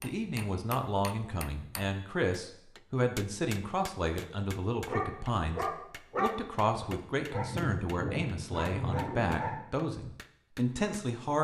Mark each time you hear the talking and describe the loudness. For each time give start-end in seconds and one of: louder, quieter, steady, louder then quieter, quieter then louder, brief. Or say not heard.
0.0-11.3 steady.